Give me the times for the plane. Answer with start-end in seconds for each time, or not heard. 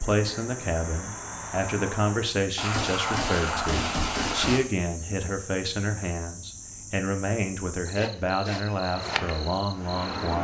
0.0-2.4, 8.8-10.3.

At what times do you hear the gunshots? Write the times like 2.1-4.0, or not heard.
2.5-4.6.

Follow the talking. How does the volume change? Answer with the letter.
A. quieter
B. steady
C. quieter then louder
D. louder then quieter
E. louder
B.